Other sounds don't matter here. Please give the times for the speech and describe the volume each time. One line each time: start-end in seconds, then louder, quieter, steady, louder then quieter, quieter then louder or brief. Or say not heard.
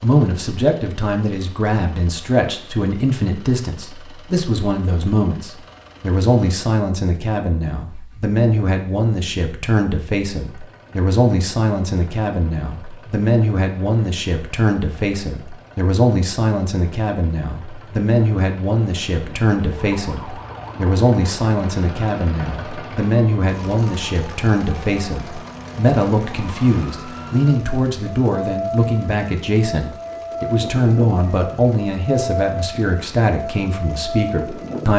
0.0-34.9 steady.